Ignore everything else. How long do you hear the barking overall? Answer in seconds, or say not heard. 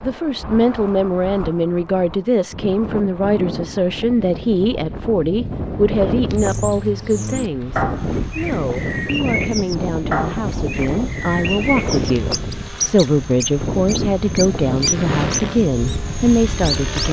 not heard.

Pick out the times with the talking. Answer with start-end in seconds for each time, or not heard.
0.0-17.0.